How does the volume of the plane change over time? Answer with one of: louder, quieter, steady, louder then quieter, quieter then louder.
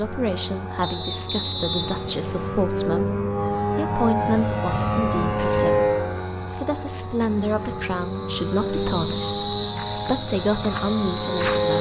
louder then quieter.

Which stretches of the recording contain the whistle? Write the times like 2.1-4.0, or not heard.
0.8-2.7.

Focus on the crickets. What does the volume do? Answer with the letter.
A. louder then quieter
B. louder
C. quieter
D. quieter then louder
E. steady
D.